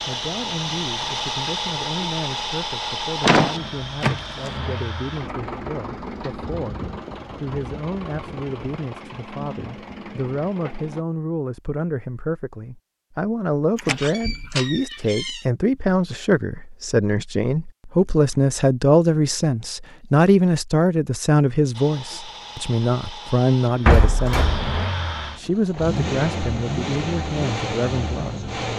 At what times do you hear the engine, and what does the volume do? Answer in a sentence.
The engine can be heard from 0.0 to 11.1 s, getting quieter; and from 21.7 to 28.7 s, getting louder.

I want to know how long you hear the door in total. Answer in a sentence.
The door can be heard for 4 seconds in total.